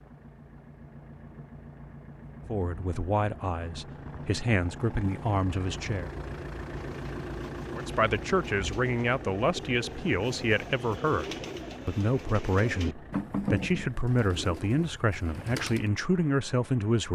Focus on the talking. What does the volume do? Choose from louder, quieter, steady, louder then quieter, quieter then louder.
steady.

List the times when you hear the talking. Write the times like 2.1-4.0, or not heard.
2.5-6.1, 7.7-17.1.